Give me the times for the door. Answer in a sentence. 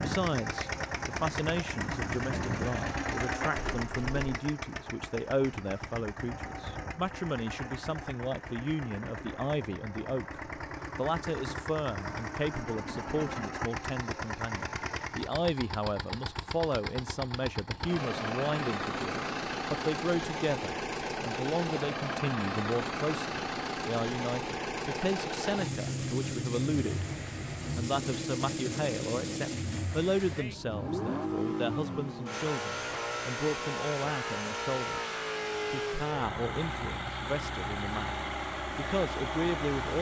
The door can be heard from 3.5 to 4.2 s.